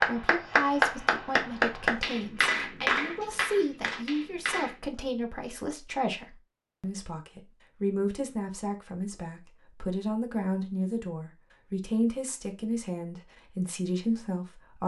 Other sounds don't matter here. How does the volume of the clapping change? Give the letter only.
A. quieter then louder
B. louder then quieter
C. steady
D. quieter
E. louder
D.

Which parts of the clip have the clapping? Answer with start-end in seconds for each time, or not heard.
0.0-4.8.